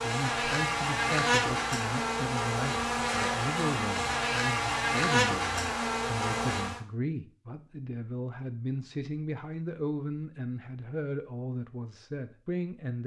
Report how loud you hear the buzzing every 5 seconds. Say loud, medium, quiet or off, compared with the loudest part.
loud, loud, off.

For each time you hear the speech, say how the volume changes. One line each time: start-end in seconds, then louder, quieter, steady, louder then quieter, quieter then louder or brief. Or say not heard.
0.0-13.0 steady.